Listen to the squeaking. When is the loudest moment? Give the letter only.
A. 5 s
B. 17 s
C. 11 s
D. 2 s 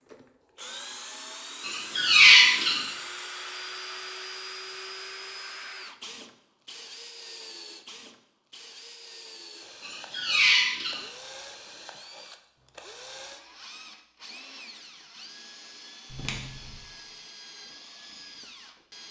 D.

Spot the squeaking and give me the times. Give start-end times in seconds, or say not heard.
1.6-2.9, 9.8-11.0, 16.1-16.8.